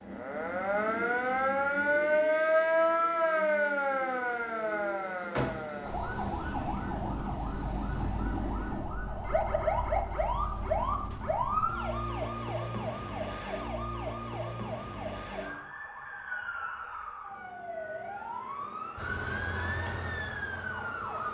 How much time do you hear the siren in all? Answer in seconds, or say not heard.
21 s.